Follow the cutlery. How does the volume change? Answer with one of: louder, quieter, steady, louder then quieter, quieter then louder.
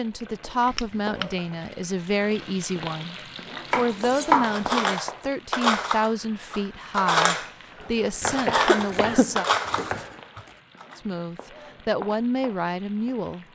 steady.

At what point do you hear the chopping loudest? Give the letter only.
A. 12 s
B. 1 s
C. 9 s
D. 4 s
D.